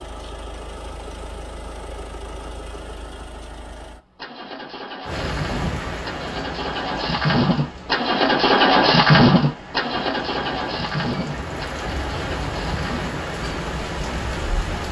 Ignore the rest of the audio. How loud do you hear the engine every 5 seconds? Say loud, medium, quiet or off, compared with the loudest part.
quiet, loud, medium.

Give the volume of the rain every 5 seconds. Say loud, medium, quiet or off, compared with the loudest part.
off, loud, loud.